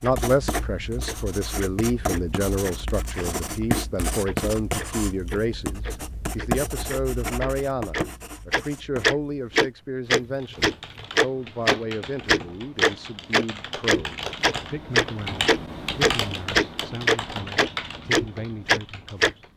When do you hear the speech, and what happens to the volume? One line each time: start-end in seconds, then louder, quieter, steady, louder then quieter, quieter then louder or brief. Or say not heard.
0.0-19.5 quieter.